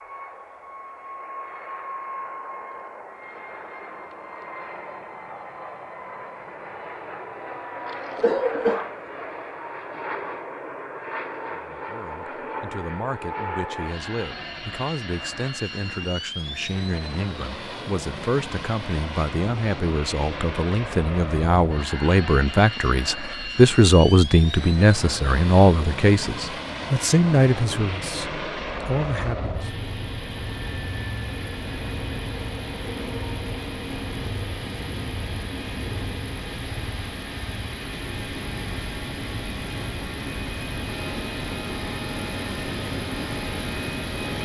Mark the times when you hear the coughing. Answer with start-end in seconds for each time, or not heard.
7.9-8.9.